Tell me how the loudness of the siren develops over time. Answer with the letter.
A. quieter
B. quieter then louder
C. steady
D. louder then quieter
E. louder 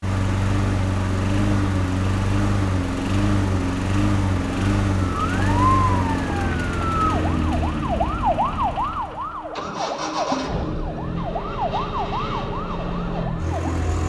A.